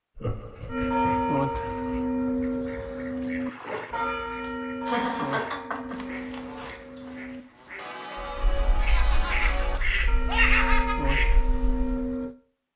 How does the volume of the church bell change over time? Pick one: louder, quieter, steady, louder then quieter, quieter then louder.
quieter then louder.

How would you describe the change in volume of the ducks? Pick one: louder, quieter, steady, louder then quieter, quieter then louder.
louder.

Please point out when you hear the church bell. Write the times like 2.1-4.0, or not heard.
0.7-12.3.